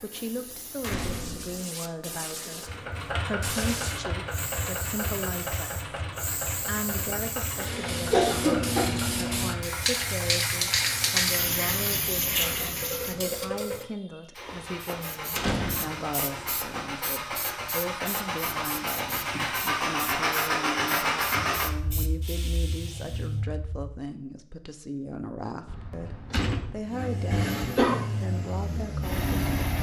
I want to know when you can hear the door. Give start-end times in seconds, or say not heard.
0.8-1.6, 14.4-16.7, 25.6-26.8.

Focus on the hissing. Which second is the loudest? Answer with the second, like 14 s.
11 s.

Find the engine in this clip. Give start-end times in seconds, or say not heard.
2.6-23.9, 26.9-29.7.